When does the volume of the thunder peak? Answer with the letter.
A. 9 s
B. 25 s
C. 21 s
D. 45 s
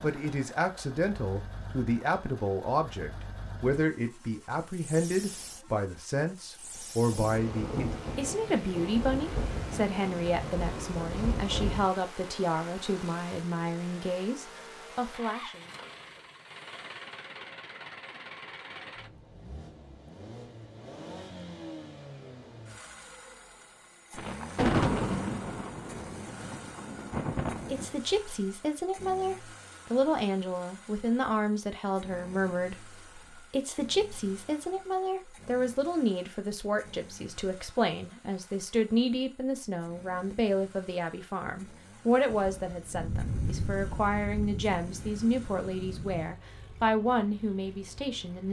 B.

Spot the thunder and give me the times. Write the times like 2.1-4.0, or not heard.
7.1-11.9, 24.1-27.9, 42.3-46.4.